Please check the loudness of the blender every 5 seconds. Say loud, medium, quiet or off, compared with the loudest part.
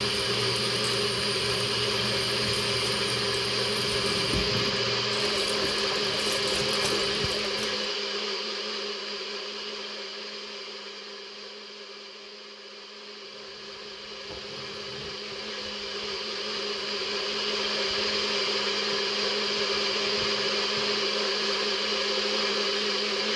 loud, loud, quiet, loud, loud.